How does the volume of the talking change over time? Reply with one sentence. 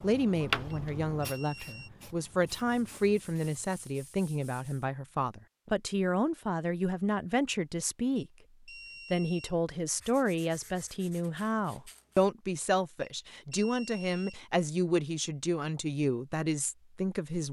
The loudness of the talking stays about the same.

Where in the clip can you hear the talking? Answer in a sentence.
The talking can be heard from 0.0 to 8.3 s and from 9.1 to 17.4 s.